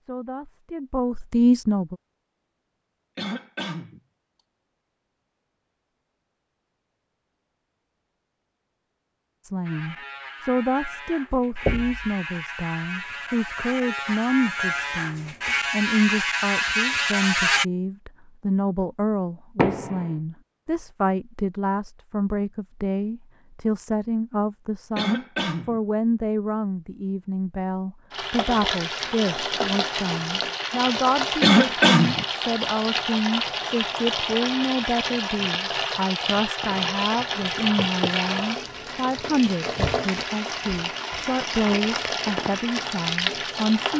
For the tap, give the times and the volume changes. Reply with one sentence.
You can hear the tap from 28.1 to 43.9 s, at a steady volume.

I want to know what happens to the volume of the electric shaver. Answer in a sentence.
The volume of the electric shaver goes up.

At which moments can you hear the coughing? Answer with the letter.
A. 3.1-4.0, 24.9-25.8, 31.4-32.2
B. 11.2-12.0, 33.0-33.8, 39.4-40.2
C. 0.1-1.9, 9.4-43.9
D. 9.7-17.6
A.